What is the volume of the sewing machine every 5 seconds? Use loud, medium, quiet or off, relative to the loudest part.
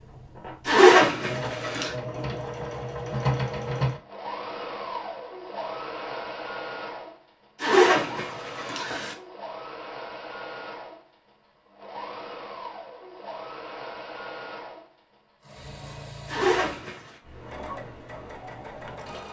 loud, medium, medium, medium.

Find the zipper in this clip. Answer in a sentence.
You can hear the zipper from 0.7 to 1.9 s, from 7.6 to 9.2 s and from 16.2 to 17.0 s.